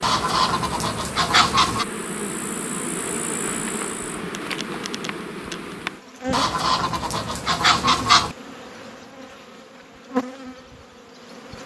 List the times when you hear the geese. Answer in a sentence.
You can hear the geese from 0.0 to 1.9 s and from 6.3 to 8.3 s.